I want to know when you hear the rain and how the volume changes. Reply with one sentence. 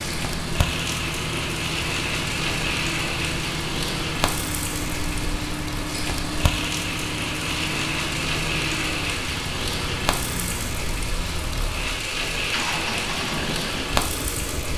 You can hear the rain from 0.0 to 14.7 s, at a steady volume.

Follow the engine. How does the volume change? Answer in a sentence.
The volume of the engine stays about the same.